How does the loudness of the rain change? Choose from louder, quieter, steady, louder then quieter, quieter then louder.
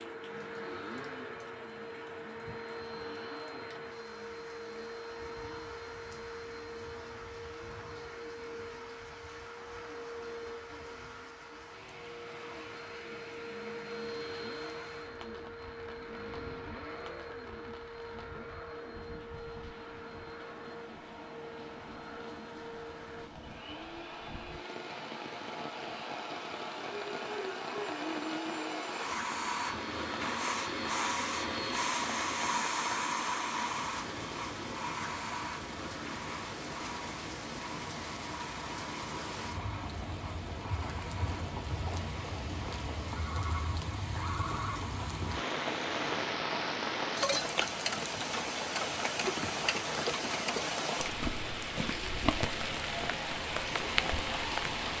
louder.